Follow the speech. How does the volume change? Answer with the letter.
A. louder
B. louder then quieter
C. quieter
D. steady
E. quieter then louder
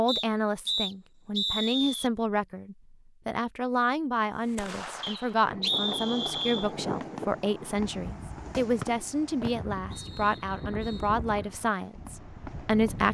D.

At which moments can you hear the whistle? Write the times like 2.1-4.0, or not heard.
0.1-2.1, 5.0-6.7, 8.8-11.1.